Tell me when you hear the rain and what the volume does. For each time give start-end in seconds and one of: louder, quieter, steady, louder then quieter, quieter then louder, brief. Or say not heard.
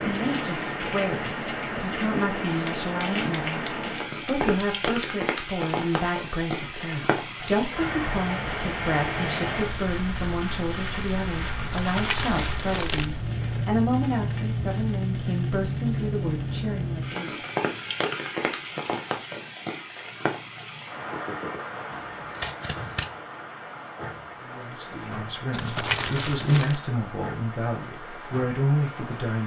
0.0-29.4 quieter.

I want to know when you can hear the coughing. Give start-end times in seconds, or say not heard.
not heard.